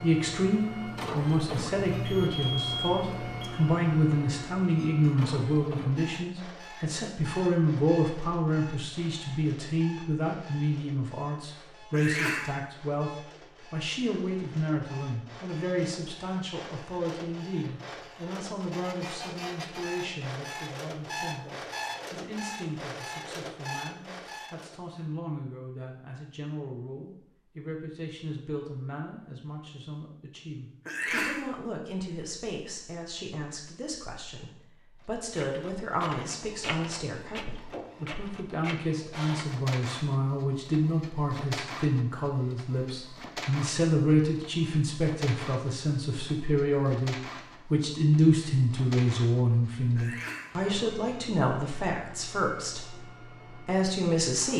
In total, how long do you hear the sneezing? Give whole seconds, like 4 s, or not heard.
2 s.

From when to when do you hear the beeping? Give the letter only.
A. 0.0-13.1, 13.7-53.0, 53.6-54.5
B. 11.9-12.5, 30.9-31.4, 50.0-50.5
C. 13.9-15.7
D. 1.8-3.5
D.